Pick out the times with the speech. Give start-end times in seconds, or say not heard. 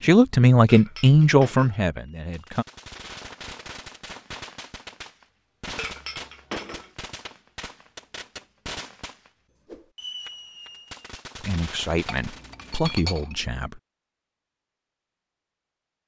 0.0-2.6, 11.4-13.8.